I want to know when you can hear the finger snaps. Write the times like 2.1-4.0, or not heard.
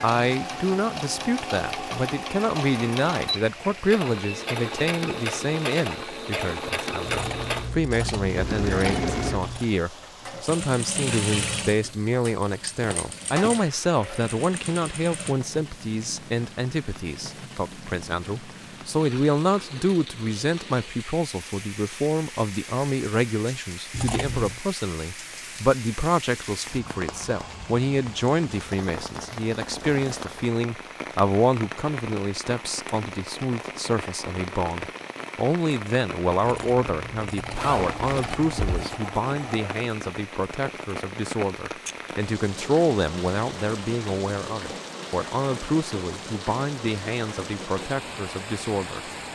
not heard.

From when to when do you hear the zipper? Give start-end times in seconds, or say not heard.
37.5-39.0.